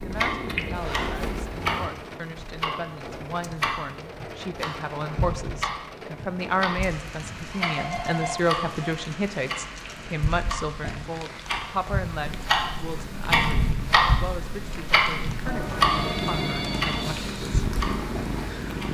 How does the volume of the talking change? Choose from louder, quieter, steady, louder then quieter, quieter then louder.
louder then quieter.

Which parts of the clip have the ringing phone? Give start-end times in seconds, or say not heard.
0.8-1.4, 7.2-9.0, 15.4-17.1.